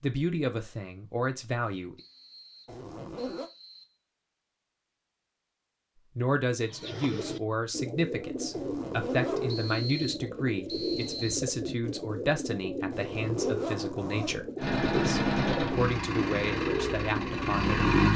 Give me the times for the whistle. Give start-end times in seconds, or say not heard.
1.9-4.0, 9.4-11.4.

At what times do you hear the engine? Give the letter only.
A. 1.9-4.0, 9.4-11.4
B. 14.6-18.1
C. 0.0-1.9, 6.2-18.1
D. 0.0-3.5
B.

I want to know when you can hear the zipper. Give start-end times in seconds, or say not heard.
2.6-3.5, 8.5-9.7, 12.9-14.4.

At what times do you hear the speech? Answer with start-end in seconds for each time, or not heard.
0.0-1.9, 6.2-18.1.